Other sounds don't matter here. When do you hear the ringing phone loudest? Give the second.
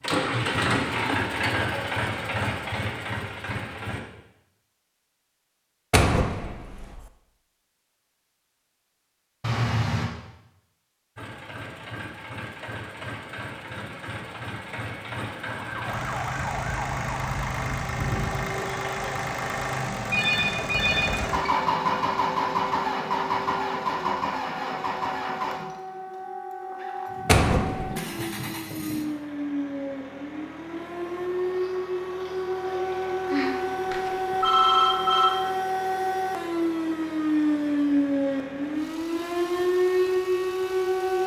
35 s.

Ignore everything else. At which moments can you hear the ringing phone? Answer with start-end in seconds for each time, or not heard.
9.4-10.1, 20.1-21.5, 33.3-35.3.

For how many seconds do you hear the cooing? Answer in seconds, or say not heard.
not heard.